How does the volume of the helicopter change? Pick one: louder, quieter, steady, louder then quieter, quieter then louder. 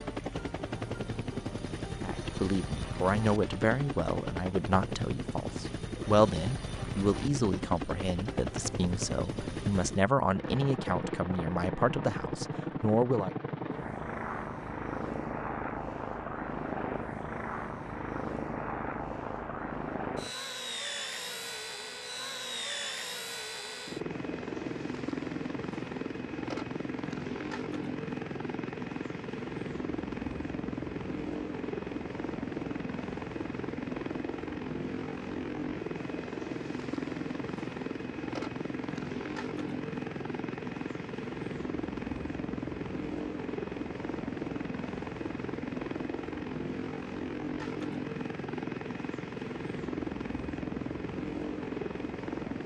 steady.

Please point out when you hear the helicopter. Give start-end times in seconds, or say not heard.
0.0-52.6.